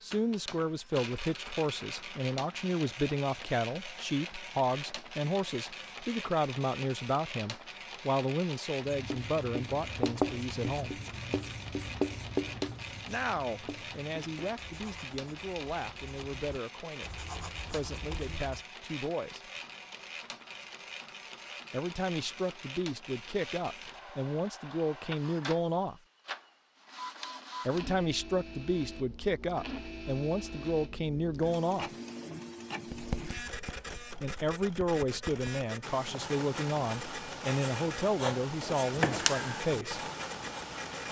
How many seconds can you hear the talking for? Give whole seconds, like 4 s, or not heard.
32 s.